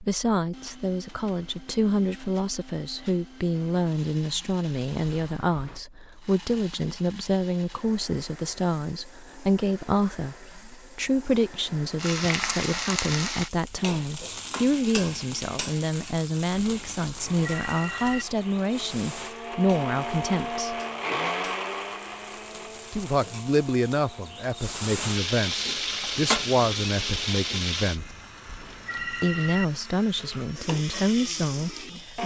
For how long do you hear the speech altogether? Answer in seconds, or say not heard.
29 s.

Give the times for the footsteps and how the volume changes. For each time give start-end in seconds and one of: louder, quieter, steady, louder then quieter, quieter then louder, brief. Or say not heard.
not heard.